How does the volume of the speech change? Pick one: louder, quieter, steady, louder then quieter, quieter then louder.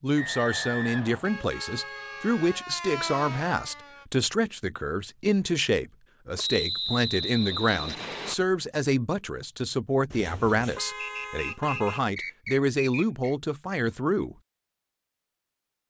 steady.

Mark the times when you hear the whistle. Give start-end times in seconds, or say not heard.
0.1-1.2, 6.3-8.3, 10.9-13.3.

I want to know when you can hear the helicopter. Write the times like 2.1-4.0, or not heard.
not heard.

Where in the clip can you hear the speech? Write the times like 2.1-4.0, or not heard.
0.0-14.3.